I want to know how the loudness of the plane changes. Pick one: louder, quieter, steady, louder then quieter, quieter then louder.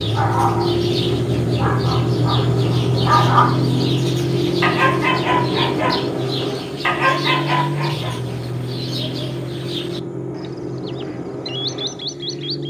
quieter.